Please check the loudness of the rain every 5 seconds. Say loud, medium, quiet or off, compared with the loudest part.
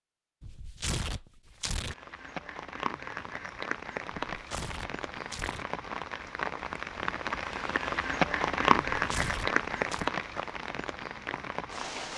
medium, loud, medium.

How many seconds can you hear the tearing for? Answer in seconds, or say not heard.
4 s.